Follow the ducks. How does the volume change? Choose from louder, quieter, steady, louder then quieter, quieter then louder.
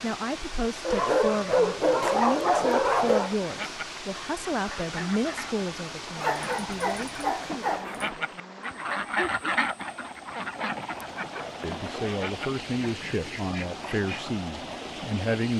louder then quieter.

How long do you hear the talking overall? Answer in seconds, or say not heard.
13 s.